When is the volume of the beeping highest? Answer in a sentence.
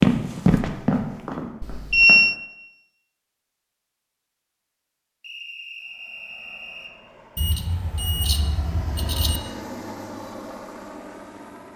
The volume of the beeping peaks at 2 seconds.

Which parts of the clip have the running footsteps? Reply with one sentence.
The running footsteps can be heard from 0.0 to 2.2 s.